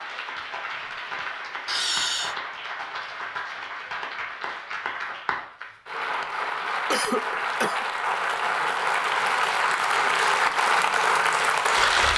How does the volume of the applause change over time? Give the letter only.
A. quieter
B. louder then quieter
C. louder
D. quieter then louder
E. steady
C.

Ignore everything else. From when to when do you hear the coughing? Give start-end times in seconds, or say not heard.
1.6-2.4, 6.9-7.8.